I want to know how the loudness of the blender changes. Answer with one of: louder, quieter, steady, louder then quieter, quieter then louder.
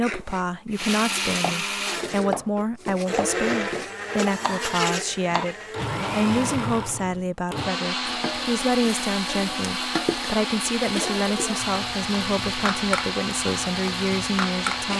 steady.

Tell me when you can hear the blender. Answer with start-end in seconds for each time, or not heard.
0.0-14.9.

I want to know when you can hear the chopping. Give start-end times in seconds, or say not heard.
0.0-5.5.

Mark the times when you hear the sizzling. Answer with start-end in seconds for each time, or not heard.
8.1-14.9.